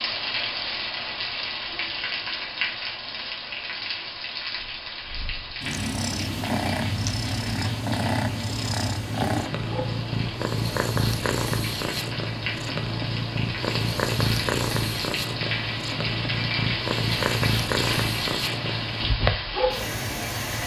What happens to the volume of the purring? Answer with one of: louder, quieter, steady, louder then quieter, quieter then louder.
steady.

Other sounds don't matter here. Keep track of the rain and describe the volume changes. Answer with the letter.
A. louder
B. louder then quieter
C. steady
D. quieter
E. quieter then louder
E.